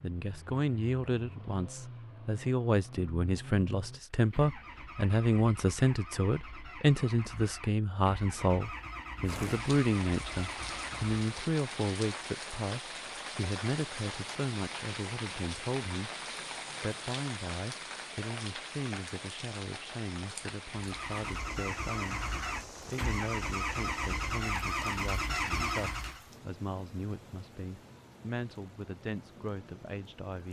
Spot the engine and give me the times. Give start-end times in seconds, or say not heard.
0.0-11.2, 20.7-26.2.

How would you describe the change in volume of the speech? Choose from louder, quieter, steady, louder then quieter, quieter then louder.
quieter.